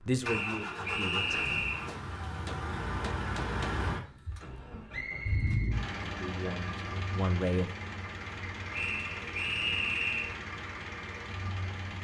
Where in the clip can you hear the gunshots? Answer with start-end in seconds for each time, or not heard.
1.9-3.8.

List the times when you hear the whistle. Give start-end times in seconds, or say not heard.
0.2-1.9, 4.9-5.8, 8.7-10.3.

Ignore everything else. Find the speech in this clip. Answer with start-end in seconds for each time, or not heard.
0.0-1.4, 6.2-7.7.